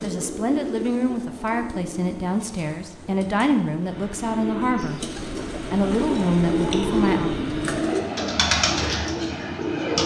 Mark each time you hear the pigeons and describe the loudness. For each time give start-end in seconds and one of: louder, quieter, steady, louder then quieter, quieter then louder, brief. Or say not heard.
0.0-10.0 quieter then louder.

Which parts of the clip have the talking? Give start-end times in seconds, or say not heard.
0.0-7.3.